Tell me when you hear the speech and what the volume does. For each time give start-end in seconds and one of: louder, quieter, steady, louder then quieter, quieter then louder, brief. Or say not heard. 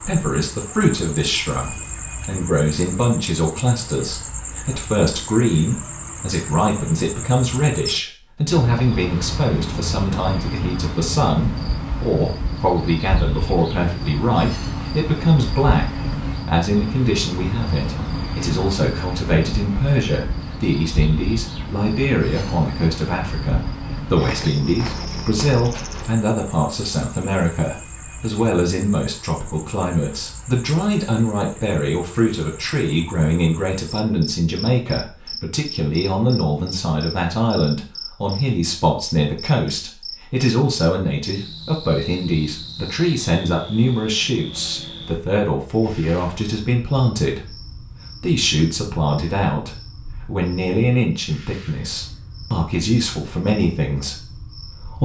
0.0-55.0 steady.